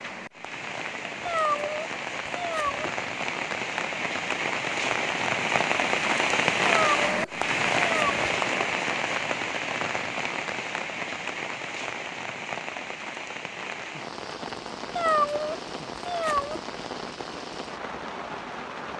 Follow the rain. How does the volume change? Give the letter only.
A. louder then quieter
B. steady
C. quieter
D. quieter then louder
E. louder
A.